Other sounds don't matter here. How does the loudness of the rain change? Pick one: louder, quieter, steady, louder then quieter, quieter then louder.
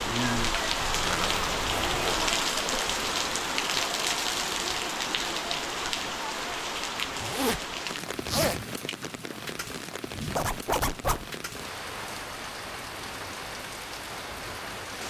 quieter.